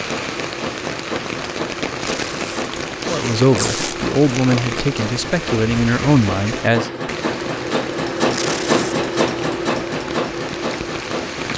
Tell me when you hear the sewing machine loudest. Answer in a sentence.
The loudest moment of the sewing machine is at 9 seconds.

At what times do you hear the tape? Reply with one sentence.
The tape can be heard from 2.0 to 4.0 s and from 8.3 to 8.9 s.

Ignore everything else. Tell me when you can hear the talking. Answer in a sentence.
You can hear the talking from 3.0 to 6.9 s.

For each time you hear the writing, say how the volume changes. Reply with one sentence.
The writing can't be heard in this clip.